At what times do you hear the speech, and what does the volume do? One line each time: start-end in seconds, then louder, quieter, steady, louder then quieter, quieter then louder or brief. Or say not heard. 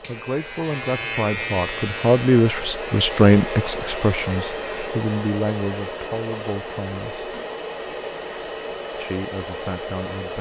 0.0-7.2 louder then quieter
9.0-10.3 brief.